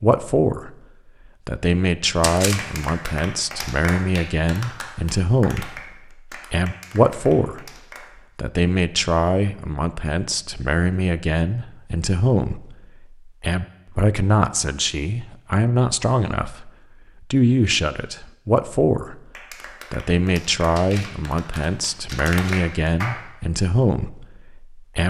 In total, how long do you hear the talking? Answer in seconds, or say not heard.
22 s.